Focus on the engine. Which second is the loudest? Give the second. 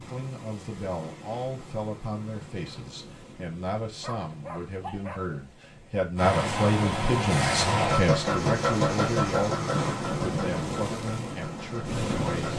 8 s.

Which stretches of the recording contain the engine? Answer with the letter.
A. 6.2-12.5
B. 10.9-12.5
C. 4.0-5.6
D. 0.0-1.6
A.